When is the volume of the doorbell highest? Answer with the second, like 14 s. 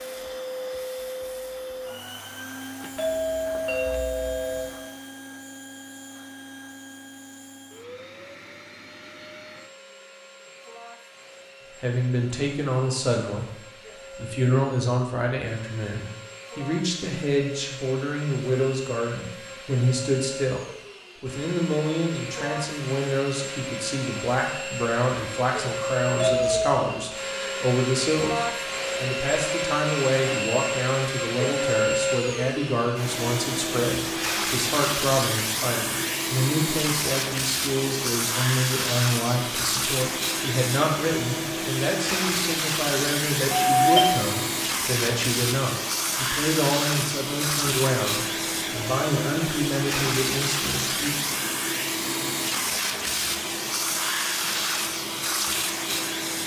44 s.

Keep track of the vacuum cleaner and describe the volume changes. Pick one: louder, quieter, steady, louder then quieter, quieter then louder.
louder.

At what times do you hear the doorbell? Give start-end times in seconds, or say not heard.
3.0-4.8, 26.1-26.9, 43.8-44.2.